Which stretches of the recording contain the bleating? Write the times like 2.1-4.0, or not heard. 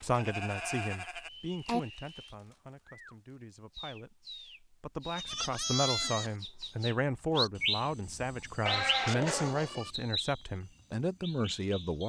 0.1-1.8, 5.2-6.3, 8.7-9.9.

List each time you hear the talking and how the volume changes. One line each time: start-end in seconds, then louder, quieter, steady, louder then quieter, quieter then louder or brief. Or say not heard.
0.0-12.0 quieter then louder.